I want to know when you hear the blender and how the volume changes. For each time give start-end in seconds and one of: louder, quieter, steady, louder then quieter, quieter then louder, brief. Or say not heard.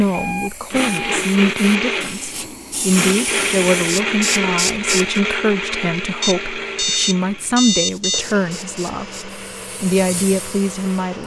0.0-11.2 quieter.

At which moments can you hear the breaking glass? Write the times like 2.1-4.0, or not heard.
not heard.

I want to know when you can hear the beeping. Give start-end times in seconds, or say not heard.
0.1-1.1, 6.2-8.2.